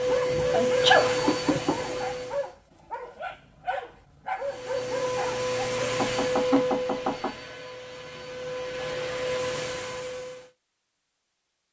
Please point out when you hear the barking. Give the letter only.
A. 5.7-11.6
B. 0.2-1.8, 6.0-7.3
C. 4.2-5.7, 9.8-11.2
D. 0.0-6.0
D.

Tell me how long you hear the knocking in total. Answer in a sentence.
The knocking can be heard for 3 seconds in total.